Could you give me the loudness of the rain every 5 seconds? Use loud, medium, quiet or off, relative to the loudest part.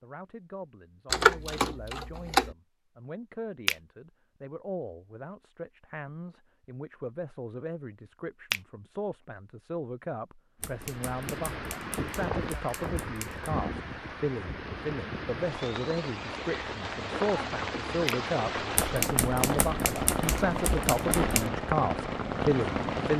off, off, medium, loud, loud.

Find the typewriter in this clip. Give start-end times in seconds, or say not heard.
1.1-2.5, 10.6-13.4, 18.8-21.5.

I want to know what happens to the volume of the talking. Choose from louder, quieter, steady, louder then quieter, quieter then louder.
louder.